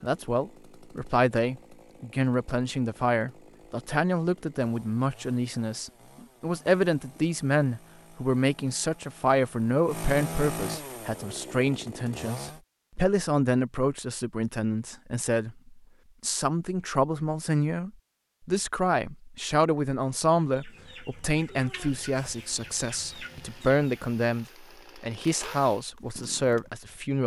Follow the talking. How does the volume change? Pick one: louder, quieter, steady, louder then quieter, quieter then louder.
steady.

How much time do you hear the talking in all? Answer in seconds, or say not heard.
27 s.